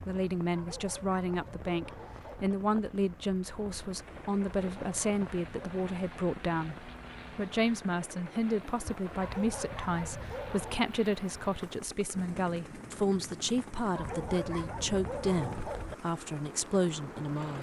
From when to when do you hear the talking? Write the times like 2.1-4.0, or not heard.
0.0-17.5.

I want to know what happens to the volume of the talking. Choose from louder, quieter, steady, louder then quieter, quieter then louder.
steady.